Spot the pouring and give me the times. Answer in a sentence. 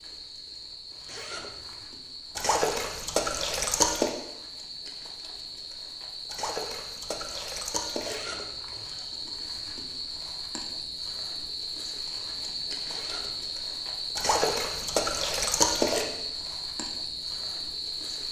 You can hear the pouring from 2.4 to 4.2 s, from 6.2 to 8.2 s and from 14.2 to 16.1 s.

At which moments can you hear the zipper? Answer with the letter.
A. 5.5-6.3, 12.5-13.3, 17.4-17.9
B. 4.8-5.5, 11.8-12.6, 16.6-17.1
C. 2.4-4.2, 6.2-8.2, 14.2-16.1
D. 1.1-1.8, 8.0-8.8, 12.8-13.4
D.